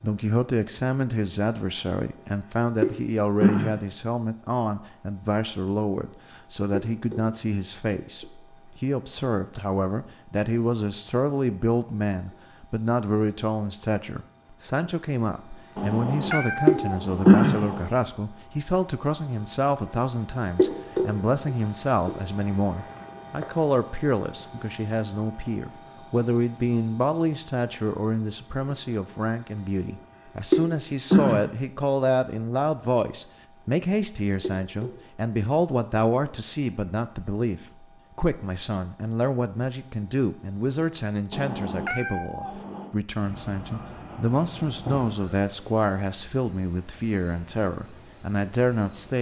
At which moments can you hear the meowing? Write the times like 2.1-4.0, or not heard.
15.8-17.9, 41.3-43.0.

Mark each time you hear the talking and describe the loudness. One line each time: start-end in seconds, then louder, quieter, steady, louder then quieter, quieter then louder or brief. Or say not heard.
0.0-49.1 steady.